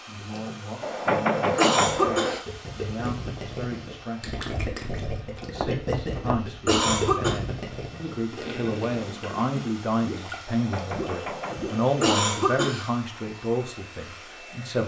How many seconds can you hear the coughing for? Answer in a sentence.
The coughing can be heard for 6 seconds in total.